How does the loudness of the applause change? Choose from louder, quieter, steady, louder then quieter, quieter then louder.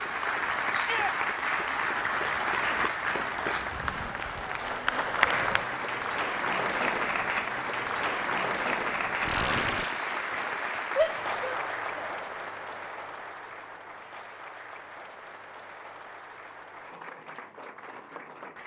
quieter.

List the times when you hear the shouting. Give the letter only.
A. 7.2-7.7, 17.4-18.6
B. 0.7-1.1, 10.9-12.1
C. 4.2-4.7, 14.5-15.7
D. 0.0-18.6
B.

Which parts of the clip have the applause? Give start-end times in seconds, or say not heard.
0.0-18.6.